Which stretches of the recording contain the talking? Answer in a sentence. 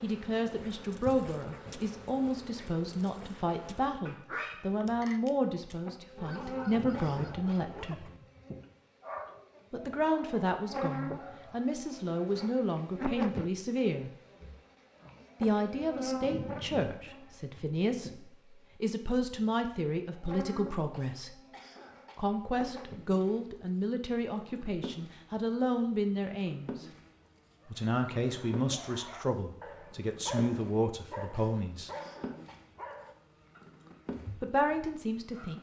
The talking can be heard from 0.0 to 8.1 s, from 9.7 to 14.1 s, from 15.4 to 21.4 s, from 22.1 to 26.9 s, from 27.7 to 31.9 s and from 34.4 to 35.5 s.